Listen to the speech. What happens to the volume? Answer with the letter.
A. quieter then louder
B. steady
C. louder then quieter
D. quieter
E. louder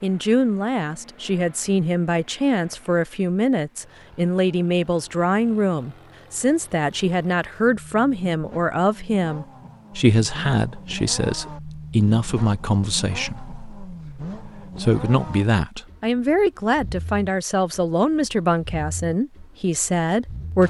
B.